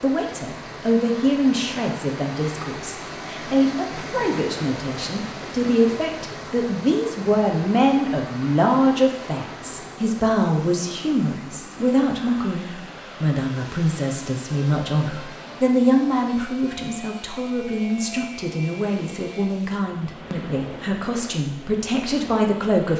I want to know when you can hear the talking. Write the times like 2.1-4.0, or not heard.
0.0-22.9.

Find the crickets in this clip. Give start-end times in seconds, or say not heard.
not heard.